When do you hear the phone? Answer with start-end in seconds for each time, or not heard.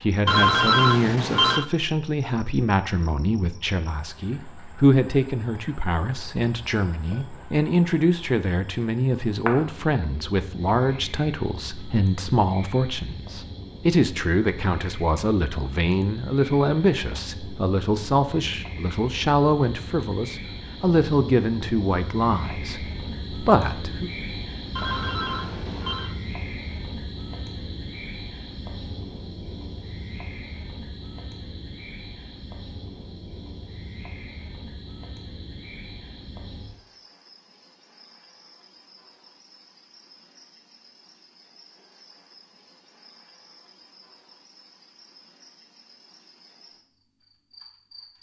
0.2-1.6, 24.8-26.1.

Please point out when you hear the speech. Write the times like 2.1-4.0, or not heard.
0.0-24.1.